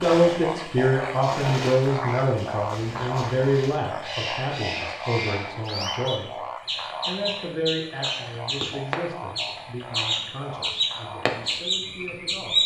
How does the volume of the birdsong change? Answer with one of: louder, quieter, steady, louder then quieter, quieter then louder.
louder.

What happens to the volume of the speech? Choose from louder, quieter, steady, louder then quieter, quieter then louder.
quieter.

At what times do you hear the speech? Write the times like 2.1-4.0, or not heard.
0.0-6.4, 7.0-12.6.